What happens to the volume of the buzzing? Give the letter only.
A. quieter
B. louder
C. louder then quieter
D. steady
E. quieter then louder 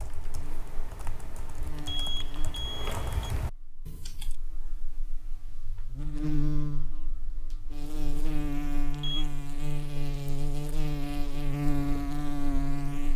E.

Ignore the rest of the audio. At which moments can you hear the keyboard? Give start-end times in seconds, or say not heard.
0.0-4.3.